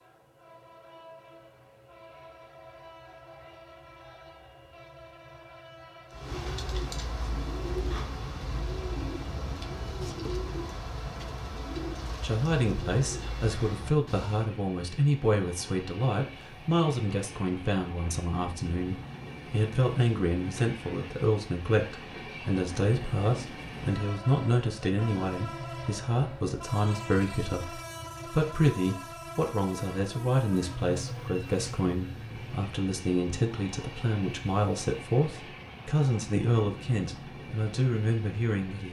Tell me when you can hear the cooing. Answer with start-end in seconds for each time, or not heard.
6.1-14.5.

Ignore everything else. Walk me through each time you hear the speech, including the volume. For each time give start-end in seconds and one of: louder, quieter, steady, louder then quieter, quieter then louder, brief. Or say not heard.
12.2-38.8 steady.